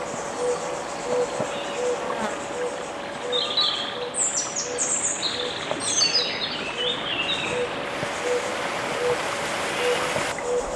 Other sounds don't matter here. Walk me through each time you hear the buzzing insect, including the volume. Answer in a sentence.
The buzzing insect can be heard from 0.0 to 10.7 s, at a steady volume.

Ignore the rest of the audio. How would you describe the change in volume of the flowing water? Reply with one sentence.
The loudness of the flowing water goes up.